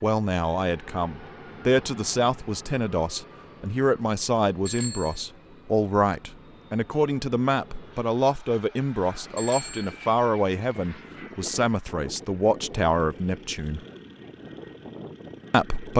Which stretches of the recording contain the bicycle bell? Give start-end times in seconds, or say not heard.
4.7-5.2, 9.3-9.9.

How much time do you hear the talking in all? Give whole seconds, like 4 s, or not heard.
14 s.